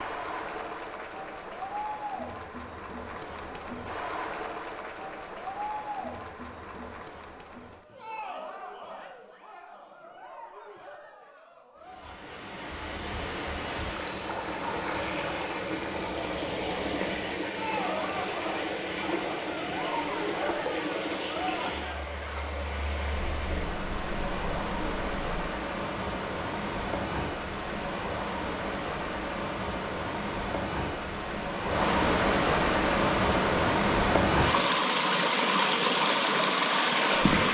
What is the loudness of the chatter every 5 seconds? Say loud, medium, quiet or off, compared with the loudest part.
loud, loud, medium, loud, loud, off, off, off.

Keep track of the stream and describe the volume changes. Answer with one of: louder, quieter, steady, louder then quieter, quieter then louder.
louder.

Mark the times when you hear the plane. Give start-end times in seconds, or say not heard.
not heard.